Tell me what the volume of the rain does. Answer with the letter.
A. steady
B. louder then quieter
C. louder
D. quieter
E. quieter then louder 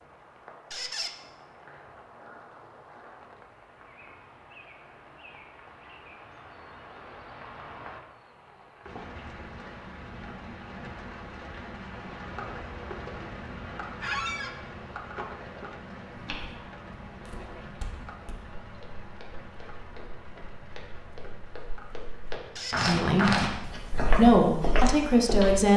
B.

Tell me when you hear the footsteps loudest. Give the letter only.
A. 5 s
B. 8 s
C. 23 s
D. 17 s
C.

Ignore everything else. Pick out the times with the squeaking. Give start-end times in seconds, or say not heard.
0.7-1.1, 14.0-14.6, 22.6-23.0.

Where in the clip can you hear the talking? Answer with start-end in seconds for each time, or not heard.
22.9-25.7.